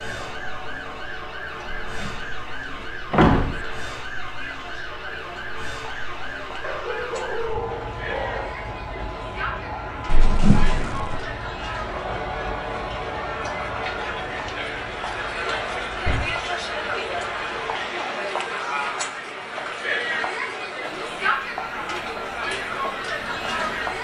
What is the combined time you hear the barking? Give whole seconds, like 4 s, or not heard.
2 s.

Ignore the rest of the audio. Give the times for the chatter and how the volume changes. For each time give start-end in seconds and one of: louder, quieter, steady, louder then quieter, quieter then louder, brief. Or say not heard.
0.0-23.9 louder.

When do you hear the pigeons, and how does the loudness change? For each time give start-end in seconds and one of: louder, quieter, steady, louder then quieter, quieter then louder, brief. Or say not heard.
not heard.